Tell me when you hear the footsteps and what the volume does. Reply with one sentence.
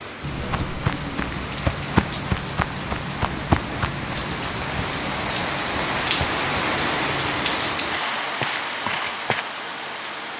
The footsteps can be heard from 0.2 to 9.4 s, getting quieter then louder.